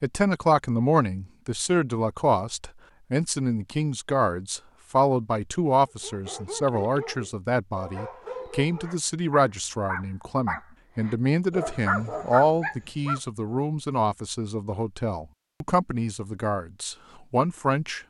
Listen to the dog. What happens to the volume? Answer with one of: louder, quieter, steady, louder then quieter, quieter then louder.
louder.